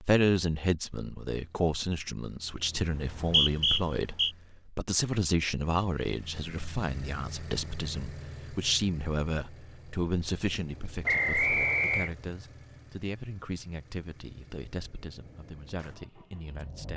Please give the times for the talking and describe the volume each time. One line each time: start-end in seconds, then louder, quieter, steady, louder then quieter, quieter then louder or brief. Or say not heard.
0.0-16.9 quieter.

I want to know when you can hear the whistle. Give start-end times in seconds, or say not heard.
2.9-4.3, 11.1-12.1.